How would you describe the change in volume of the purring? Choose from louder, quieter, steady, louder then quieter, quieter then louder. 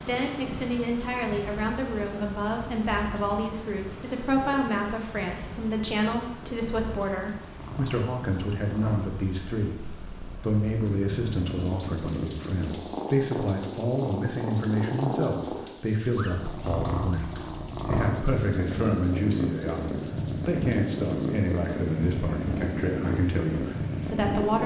louder.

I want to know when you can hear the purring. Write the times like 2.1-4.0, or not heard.
0.0-24.6.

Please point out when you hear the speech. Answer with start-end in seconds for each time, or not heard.
0.0-9.8, 10.4-24.6.